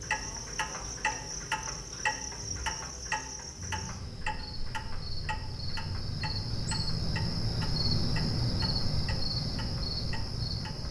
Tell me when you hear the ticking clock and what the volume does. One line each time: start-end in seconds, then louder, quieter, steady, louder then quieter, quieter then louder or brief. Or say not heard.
0.0-10.8 quieter.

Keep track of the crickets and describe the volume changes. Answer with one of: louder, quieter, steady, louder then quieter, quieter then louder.
louder.